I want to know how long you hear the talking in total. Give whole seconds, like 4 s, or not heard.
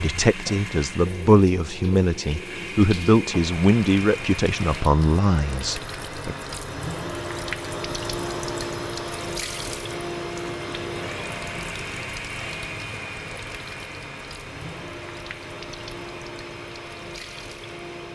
6 s.